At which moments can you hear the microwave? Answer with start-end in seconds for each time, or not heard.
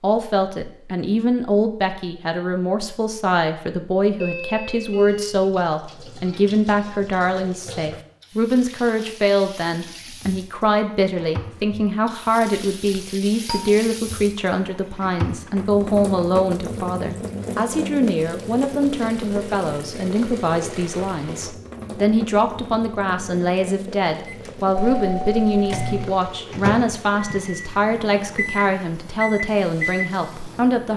24.2-30.9.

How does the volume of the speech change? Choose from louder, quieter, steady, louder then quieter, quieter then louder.
steady.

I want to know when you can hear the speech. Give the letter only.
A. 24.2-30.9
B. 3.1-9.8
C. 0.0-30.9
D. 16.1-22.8
C.